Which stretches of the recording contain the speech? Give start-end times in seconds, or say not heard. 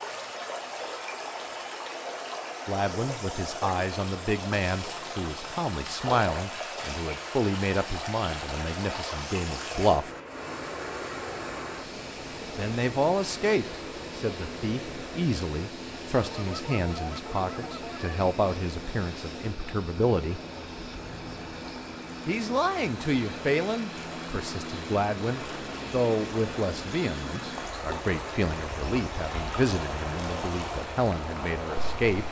2.6-10.1, 12.6-20.4, 22.2-32.2.